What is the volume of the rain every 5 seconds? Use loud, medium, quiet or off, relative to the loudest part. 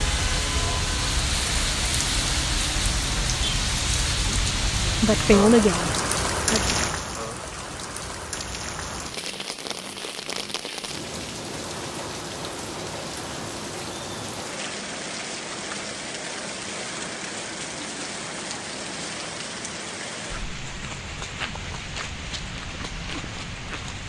loud, loud, medium, medium, medium.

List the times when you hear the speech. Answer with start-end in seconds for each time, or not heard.
4.2-6.8.